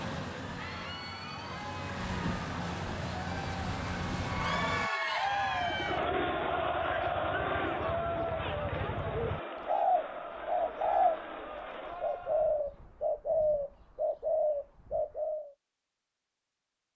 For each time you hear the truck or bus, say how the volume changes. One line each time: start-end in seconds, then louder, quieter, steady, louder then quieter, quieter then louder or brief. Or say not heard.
0.0-4.9 louder.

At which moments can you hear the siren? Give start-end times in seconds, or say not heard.
not heard.